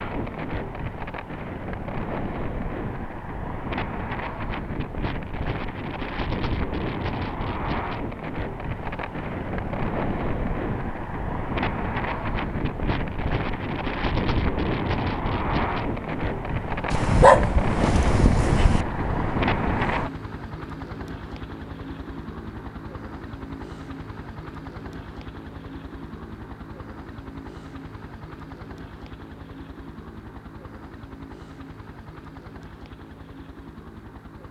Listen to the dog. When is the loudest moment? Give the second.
17 s.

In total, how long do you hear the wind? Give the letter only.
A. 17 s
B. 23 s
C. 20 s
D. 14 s
C.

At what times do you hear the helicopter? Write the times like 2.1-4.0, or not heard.
18.7-34.4.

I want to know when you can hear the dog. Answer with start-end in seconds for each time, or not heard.
16.9-18.9.